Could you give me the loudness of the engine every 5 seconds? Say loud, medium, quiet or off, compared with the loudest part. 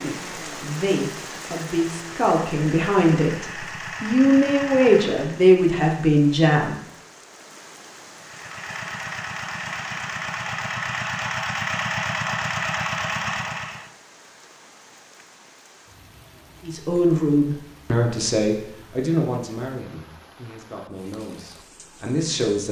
medium, medium, loud, off, off.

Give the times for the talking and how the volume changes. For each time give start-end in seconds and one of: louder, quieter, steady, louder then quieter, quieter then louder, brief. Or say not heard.
0.0-6.8 louder
16.6-22.6 quieter then louder.